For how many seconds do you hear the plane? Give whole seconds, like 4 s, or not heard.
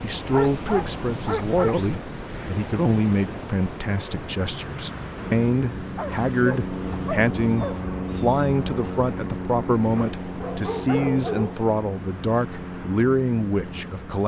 9 s.